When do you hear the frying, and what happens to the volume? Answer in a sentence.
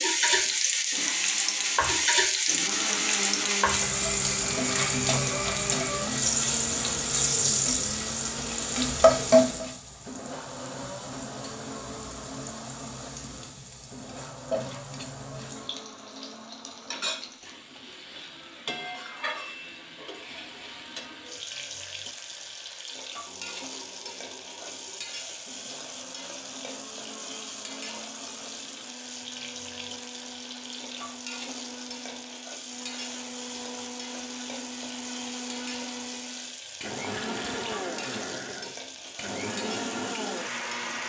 The frying can be heard from 0.0 to 41.0 s, getting quieter.